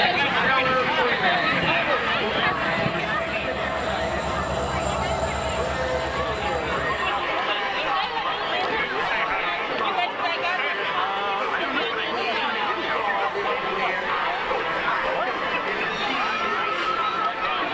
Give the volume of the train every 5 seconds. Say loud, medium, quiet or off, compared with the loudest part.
loud, loud, off, off.